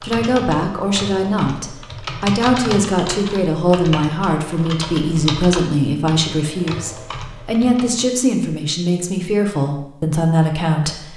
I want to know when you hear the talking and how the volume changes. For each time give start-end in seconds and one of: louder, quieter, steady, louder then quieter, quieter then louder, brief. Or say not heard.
0.0-11.1 steady.